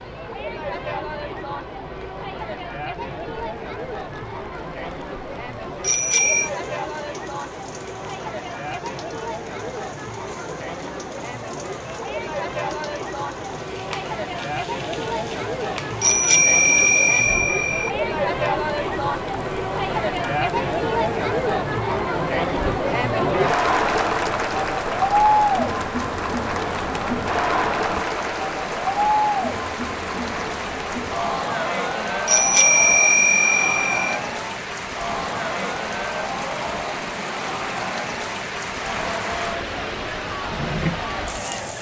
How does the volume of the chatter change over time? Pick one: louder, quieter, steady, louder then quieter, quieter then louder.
louder then quieter.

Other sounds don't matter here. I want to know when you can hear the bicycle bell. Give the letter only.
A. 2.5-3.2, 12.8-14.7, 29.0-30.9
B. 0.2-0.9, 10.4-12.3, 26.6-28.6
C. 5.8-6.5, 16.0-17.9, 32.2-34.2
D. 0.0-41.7
C.